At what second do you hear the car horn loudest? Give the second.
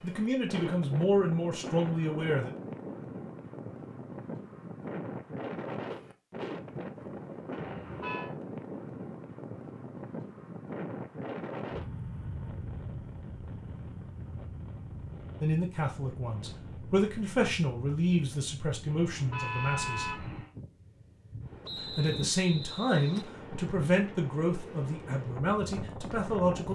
20 s.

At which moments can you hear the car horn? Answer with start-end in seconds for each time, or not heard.
7.5-8.3, 18.9-20.5.